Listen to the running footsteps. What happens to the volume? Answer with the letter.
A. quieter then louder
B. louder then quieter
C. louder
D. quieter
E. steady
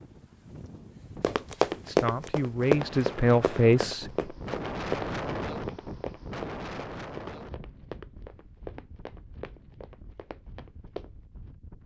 D.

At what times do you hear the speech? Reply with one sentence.
The speech can be heard from 1.9 to 4.3 s.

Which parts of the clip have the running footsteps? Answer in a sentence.
You can hear the running footsteps from 1.2 to 11.1 s.